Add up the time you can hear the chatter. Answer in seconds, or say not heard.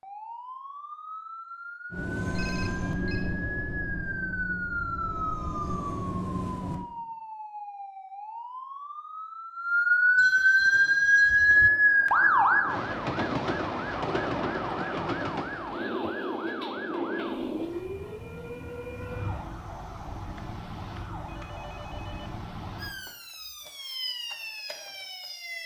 not heard.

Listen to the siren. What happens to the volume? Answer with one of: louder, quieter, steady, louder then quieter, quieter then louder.
louder then quieter.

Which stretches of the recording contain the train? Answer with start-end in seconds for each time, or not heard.
1.9-6.8, 10.6-19.4.